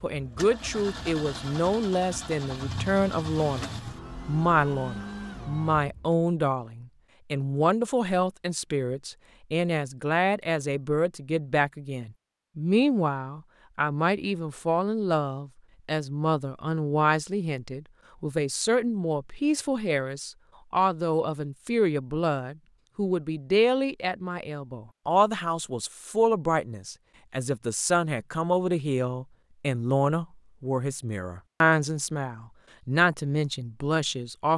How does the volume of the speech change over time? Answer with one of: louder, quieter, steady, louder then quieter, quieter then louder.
steady.